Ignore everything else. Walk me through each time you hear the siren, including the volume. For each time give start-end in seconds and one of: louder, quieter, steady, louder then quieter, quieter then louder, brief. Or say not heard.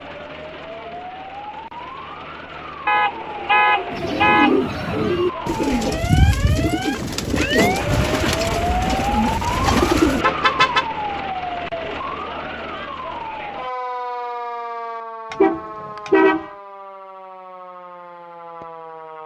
0.0-19.2 louder then quieter.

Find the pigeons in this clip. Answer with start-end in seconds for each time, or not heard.
3.9-10.2.